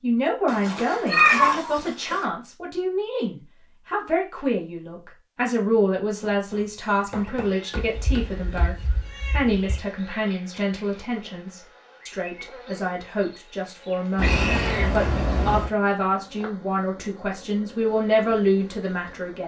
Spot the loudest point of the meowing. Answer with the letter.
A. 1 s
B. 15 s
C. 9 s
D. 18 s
A.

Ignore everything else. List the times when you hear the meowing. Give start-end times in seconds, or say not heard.
0.5-2.1, 7.8-9.8, 14.2-15.7.